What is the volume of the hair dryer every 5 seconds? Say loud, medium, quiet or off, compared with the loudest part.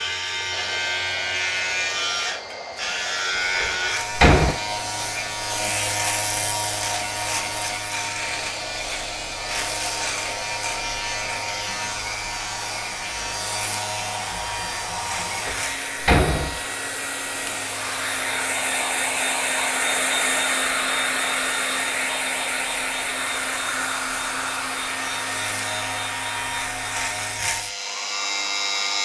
medium, medium, medium, loud, loud, medium.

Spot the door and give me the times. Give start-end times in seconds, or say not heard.
3.4-4.5, 15.3-16.6.